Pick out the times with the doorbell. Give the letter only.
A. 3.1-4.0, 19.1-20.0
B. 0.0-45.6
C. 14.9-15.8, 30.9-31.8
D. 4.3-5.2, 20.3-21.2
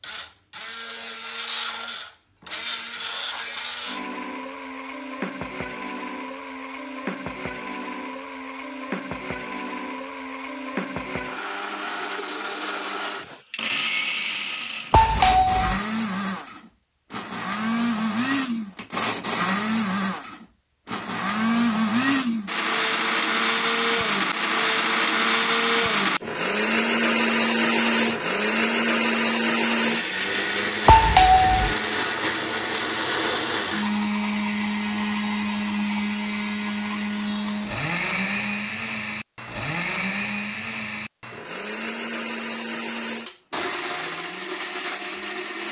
C.